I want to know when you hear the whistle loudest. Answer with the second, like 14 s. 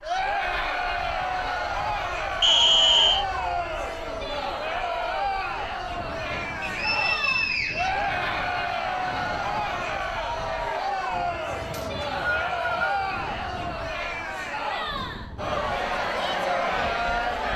3 s.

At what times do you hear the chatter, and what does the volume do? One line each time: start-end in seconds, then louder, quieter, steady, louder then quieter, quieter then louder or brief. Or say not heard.
0.0-17.5 steady.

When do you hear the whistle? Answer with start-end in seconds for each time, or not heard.
2.4-3.2, 6.6-8.0, 11.7-13.0.